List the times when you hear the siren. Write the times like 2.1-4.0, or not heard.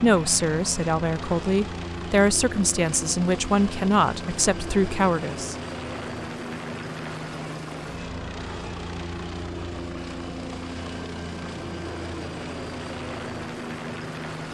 not heard.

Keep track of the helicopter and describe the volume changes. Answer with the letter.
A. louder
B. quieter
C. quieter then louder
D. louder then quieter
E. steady
E.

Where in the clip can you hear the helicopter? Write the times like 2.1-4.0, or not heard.
0.0-14.4.